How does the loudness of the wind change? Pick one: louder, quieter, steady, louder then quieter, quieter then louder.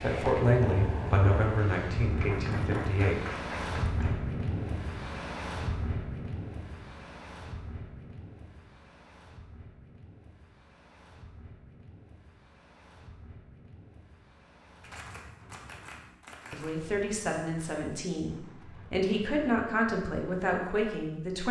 quieter.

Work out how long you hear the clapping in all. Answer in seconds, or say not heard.
4 s.